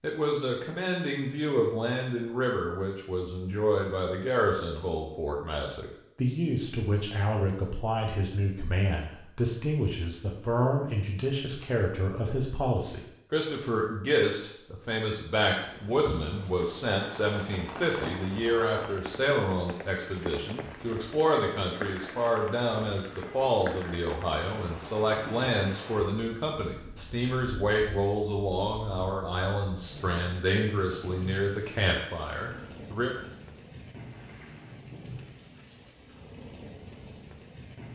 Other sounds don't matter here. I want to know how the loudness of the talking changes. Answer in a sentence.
The loudness of the talking stays about the same.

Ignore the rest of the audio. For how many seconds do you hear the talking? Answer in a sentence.
The talking can be heard for 33 seconds in total.